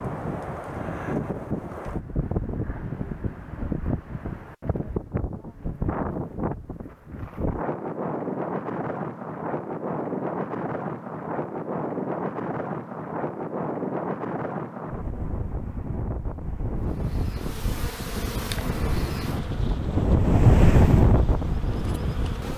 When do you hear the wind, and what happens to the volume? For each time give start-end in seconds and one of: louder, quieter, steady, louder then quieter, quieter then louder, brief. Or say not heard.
0.0-22.5 louder.